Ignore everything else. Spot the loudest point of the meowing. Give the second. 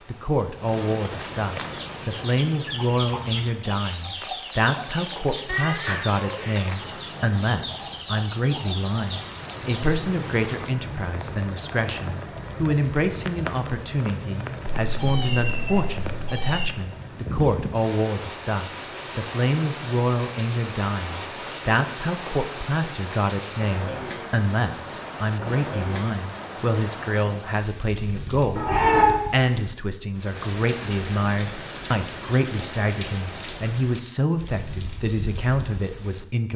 29 s.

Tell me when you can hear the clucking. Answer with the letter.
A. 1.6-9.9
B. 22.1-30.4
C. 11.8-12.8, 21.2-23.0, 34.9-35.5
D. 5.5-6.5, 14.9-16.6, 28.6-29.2
A.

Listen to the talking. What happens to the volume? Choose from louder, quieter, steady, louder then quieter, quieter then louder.
steady.